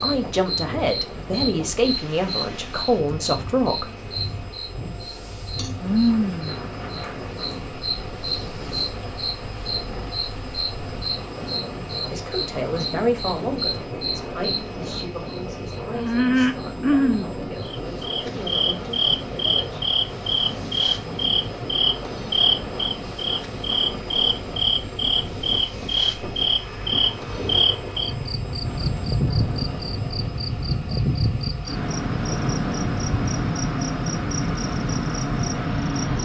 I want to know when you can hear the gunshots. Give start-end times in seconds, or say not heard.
not heard.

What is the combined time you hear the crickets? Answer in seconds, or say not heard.
36 s.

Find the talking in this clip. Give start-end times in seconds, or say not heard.
0.0-3.9, 12.1-19.8.